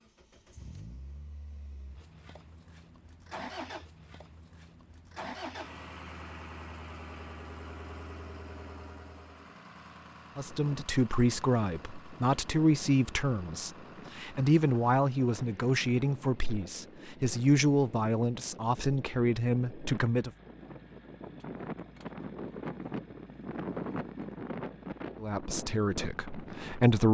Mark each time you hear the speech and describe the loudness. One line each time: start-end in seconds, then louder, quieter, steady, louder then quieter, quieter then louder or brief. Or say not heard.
10.3-20.3 steady
25.2-27.0 brief.